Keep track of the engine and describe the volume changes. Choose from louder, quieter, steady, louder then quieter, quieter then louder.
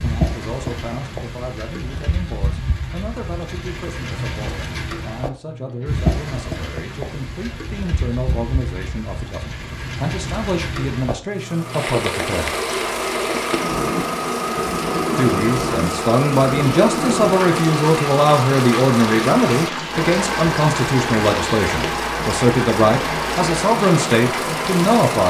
steady.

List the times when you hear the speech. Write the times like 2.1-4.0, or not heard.
0.0-12.7, 15.2-25.2.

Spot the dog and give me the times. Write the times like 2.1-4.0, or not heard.
not heard.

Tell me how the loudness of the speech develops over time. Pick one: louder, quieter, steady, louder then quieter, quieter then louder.
louder.